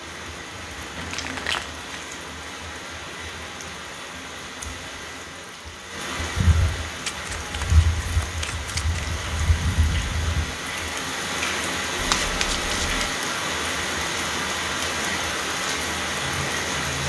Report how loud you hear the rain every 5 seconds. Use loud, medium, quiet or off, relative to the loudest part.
medium, medium, loud, loud.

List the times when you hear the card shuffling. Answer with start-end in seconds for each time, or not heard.
0.9-1.9, 7.0-9.1, 11.9-13.1.